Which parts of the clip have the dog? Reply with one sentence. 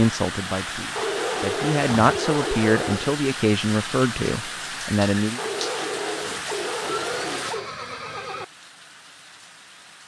You can hear the dog from 0.9 to 3.1 s and from 5.3 to 7.7 s.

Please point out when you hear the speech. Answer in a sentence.
The speech can be heard from 0.0 to 5.4 s.